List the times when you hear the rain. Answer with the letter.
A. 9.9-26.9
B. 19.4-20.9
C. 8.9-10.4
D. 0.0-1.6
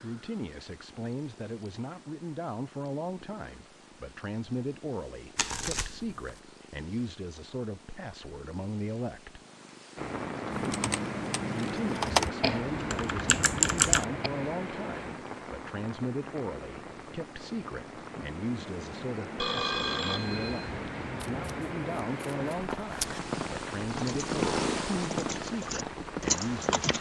A.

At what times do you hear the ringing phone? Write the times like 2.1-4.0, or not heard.
19.4-20.9.